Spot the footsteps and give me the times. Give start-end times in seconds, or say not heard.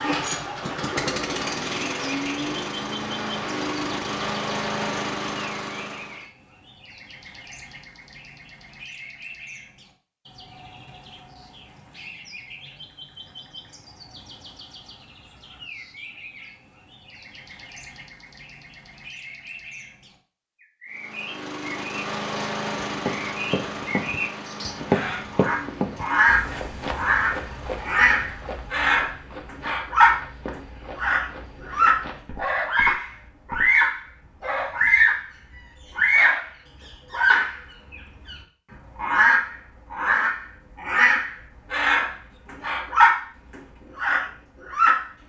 22.9-33.7.